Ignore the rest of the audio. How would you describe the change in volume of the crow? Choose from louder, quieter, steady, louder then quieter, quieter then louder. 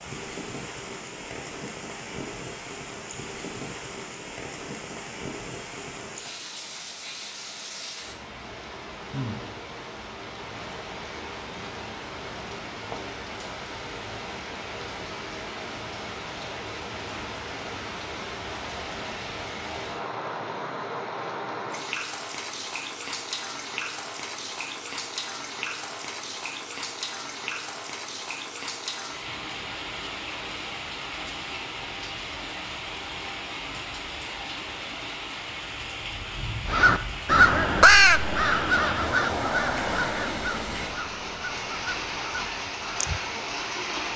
quieter.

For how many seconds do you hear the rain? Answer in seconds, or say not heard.
44 s.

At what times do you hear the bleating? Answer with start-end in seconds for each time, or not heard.
not heard.